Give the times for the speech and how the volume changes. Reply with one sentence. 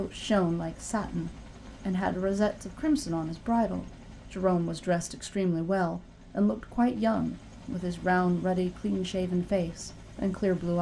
You can hear the speech from 0.0 to 10.7 s, at a steady volume.